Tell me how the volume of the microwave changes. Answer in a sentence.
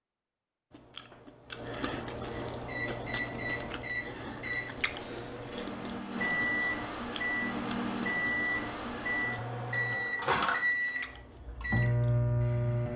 The volume of the microwave goes up.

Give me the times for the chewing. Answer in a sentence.
The chewing can be heard from 0.7 to 12.2 s.